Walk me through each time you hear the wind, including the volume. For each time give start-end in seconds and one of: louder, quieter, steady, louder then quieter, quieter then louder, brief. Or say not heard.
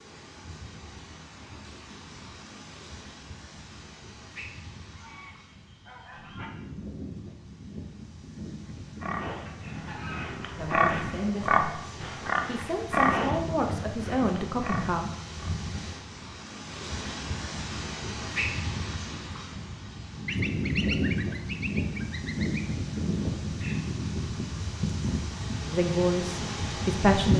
0.0-27.3 louder.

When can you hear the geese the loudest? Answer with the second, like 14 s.
21 s.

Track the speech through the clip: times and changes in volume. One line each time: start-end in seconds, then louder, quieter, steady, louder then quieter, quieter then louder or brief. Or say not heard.
10.6-15.1 quieter then louder
25.6-27.3 brief.